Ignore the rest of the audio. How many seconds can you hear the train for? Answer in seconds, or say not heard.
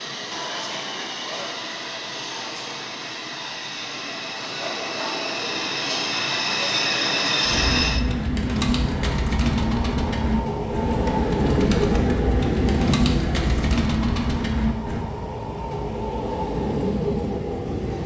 18 s.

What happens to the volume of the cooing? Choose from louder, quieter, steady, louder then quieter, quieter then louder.
steady.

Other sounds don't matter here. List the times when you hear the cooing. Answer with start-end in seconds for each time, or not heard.
7.5-15.1.